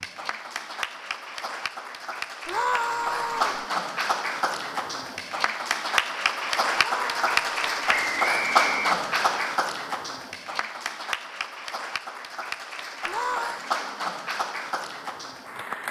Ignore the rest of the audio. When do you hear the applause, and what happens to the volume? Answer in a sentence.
The applause can be heard from 0.0 to 15.8 s, getting louder then quieter.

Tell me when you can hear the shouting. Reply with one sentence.
The shouting can be heard from 2.5 to 3.6 s, from 6.8 to 7.8 s and from 13.1 to 13.7 s.